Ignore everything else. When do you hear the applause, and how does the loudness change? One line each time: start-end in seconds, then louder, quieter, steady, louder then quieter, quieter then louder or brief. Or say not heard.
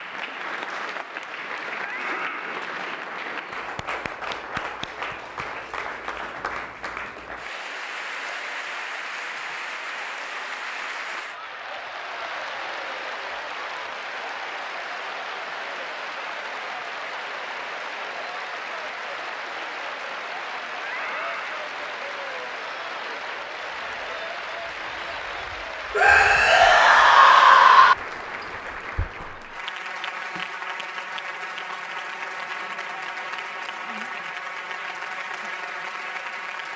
0.0-36.7 steady.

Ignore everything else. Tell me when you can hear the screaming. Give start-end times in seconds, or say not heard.
1.8-2.6, 20.9-21.6, 25.9-27.9.